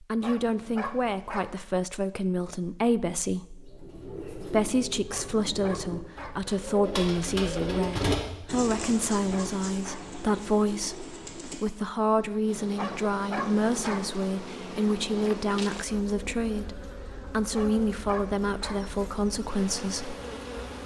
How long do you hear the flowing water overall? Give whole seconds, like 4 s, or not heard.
not heard.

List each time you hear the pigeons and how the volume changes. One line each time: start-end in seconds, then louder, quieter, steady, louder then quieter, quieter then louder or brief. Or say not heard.
3.5-11.8 louder then quieter.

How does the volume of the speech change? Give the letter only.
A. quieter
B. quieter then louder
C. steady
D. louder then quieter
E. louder
C.